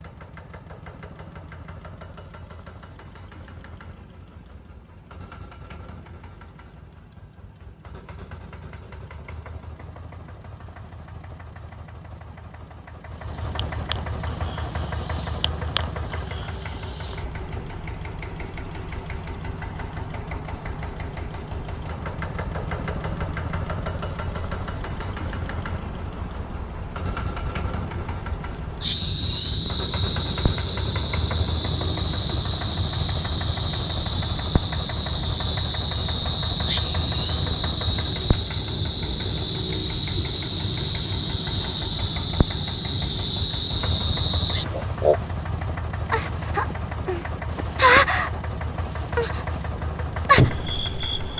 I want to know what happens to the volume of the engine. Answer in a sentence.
The loudness of the engine goes up.